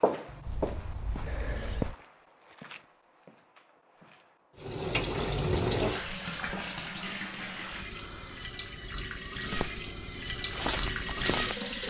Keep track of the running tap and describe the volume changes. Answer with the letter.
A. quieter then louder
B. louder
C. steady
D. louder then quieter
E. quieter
A.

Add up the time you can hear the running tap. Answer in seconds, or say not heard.
7 s.